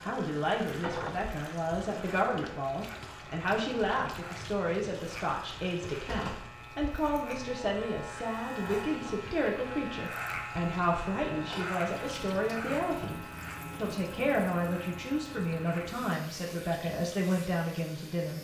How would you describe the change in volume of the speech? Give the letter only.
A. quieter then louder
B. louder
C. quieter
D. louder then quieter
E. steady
E.